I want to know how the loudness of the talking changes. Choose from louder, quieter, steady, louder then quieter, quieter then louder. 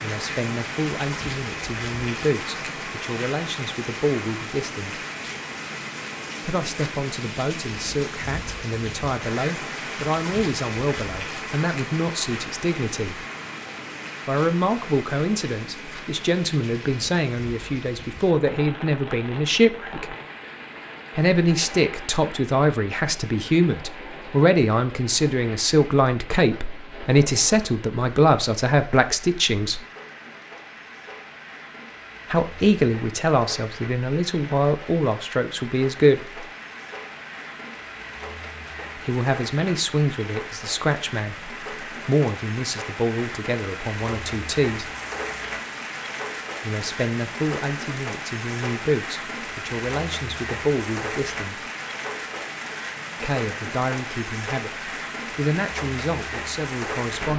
louder then quieter.